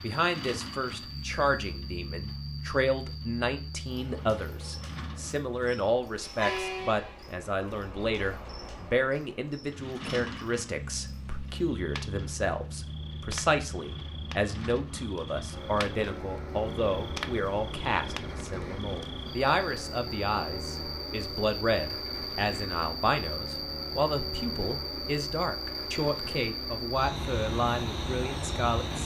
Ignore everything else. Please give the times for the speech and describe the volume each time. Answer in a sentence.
The speech can be heard from 0.0 to 29.0 s, at a steady volume.